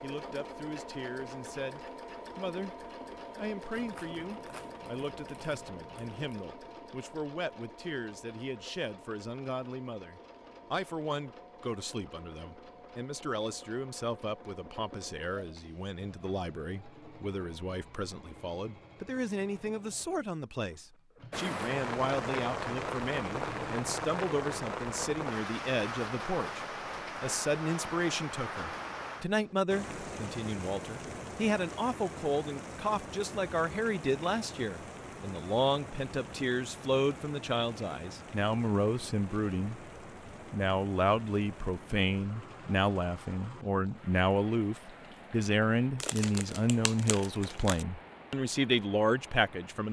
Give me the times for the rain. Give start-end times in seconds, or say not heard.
21.3-49.8.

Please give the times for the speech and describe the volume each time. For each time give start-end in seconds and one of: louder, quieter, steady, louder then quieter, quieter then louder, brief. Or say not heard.
0.0-39.8 louder
40.5-49.8 steady.